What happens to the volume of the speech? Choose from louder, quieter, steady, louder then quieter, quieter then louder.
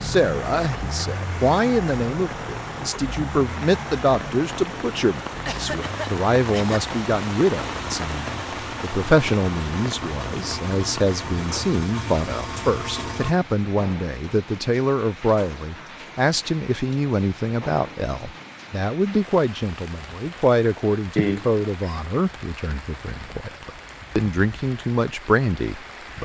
steady.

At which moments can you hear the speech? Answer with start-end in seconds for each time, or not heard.
0.0-26.1.